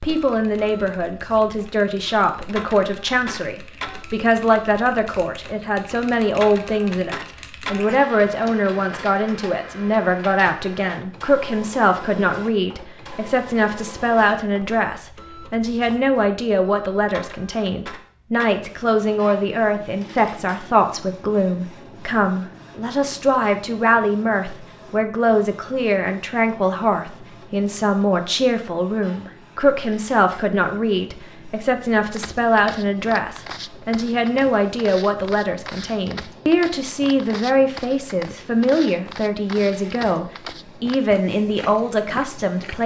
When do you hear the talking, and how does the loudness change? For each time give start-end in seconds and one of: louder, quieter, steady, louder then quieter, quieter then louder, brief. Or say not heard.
0.0-42.8 steady.